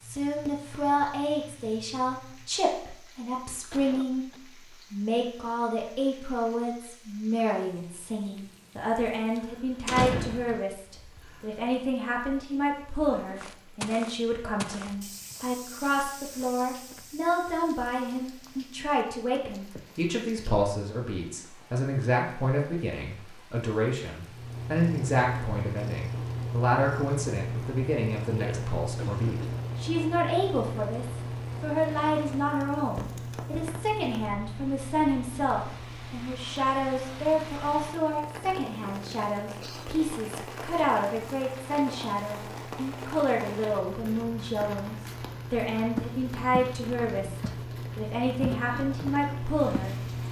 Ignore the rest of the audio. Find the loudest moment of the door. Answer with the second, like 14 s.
10 s.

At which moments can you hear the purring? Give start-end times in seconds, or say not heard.
0.0-2.6, 24.2-50.2.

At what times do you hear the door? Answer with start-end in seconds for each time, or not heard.
9.8-10.6, 33.0-33.8.